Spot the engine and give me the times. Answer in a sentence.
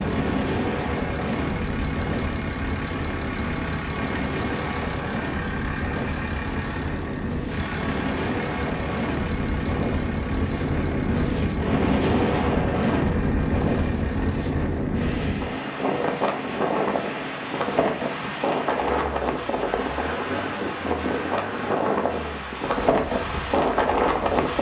The engine can be heard from 0.0 to 24.4 s.